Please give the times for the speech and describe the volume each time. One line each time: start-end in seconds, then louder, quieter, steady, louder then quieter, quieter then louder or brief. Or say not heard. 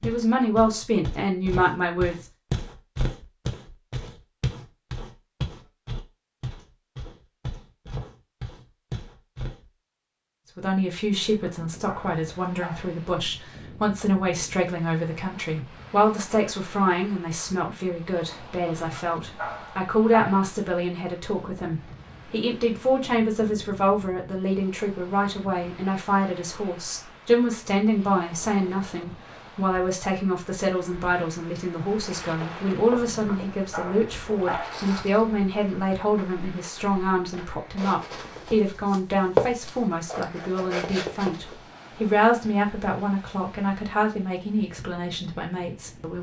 0.0-2.2 brief
10.6-46.1 steady.